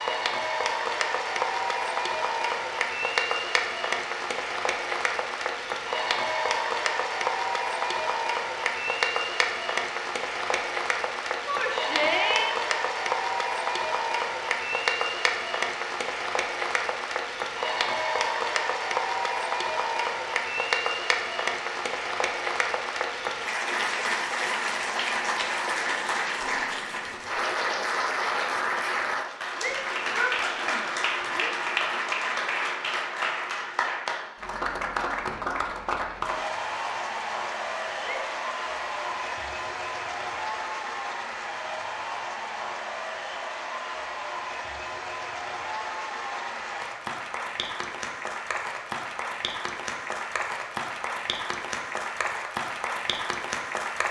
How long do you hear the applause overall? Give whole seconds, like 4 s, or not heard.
54 s.